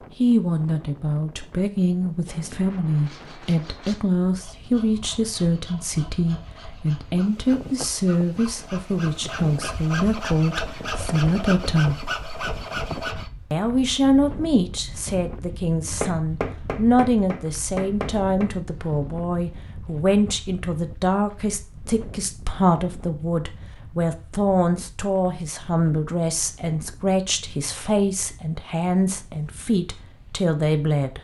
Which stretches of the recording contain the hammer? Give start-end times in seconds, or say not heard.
15.8-18.5.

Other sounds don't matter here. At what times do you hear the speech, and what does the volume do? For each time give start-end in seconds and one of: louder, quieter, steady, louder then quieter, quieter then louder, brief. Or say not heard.
0.2-12.1 steady
13.5-31.1 steady.